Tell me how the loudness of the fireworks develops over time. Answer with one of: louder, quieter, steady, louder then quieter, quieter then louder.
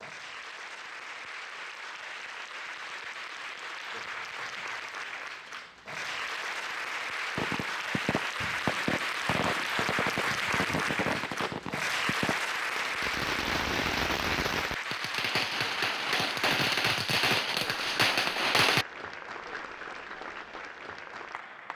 louder.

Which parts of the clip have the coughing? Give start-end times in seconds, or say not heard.
not heard.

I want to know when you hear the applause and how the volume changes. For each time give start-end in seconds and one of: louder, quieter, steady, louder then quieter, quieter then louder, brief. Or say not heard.
0.0-21.7 louder then quieter.